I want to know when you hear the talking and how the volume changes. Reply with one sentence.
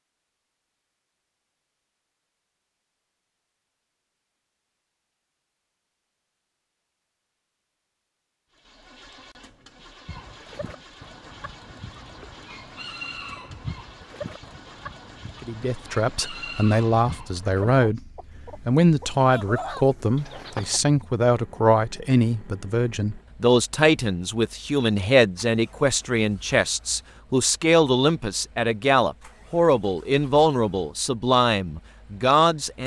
The talking can be heard from 15.4 to 32.8 s, at a steady volume.